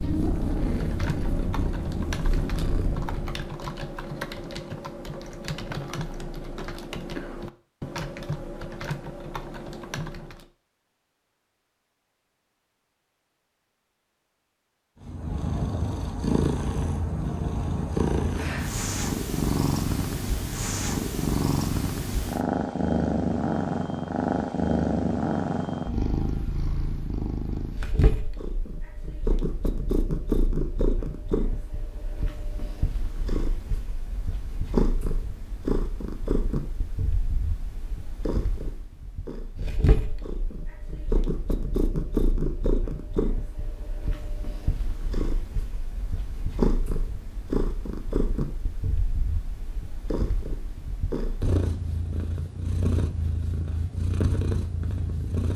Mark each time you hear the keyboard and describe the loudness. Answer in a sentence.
The keyboard can be heard from 0.3 to 10.5 s, at a steady volume.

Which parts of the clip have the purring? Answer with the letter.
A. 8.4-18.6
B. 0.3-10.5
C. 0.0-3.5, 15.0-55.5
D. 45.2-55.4
C.